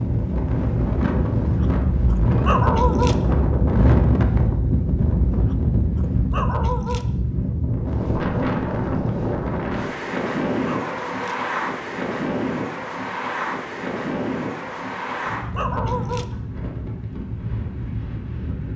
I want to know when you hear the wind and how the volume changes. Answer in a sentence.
The wind can be heard from 0.0 to 18.7 s, getting quieter.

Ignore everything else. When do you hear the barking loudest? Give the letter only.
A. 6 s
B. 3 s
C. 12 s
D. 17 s
B.